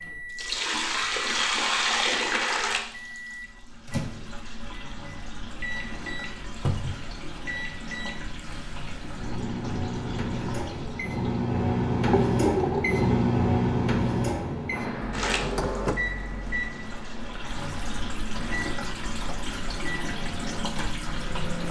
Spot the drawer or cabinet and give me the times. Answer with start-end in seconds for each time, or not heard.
6.6-7.0, 15.0-16.6.